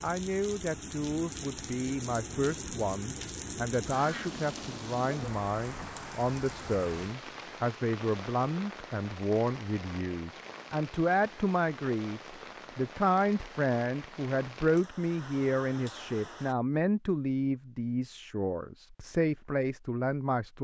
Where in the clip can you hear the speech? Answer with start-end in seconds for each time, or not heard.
0.0-20.5.